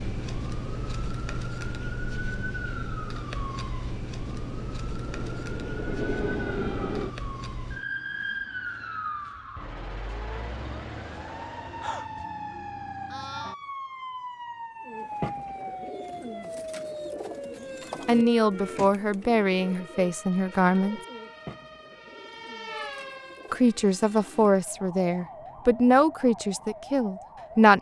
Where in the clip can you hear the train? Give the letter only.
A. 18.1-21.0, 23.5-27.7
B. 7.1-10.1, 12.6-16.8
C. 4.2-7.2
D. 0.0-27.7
C.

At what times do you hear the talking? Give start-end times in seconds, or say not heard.
18.1-21.0, 23.5-27.7.